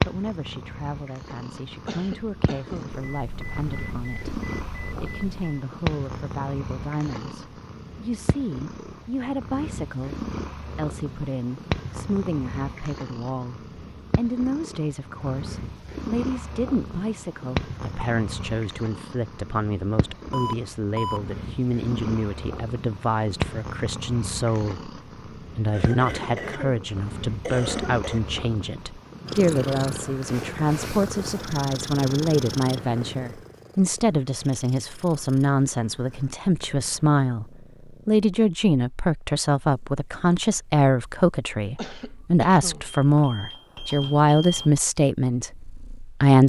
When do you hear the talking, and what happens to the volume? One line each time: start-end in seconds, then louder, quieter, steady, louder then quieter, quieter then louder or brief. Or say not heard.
0.1-46.4 louder.